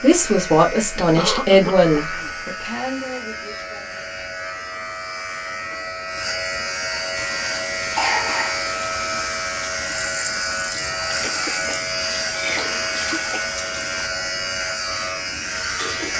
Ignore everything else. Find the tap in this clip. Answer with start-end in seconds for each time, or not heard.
7.2-14.1.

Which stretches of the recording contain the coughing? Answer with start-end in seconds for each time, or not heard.
0.9-2.3, 8.0-8.8, 11.2-13.5.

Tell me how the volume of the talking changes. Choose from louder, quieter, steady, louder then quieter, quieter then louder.
quieter.